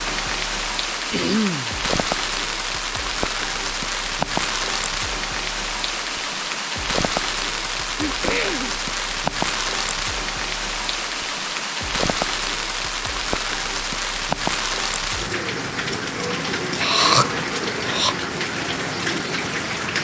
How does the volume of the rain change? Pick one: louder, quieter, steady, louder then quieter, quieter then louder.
steady.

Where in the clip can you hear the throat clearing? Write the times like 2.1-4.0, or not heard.
1.1-1.8, 7.7-8.8, 16.8-18.1.